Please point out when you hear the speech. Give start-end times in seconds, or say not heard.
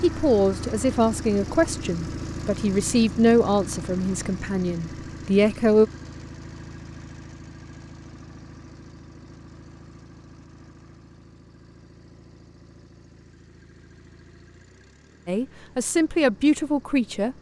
0.0-5.9, 15.2-17.3.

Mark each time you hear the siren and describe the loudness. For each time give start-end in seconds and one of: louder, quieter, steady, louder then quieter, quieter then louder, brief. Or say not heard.
not heard.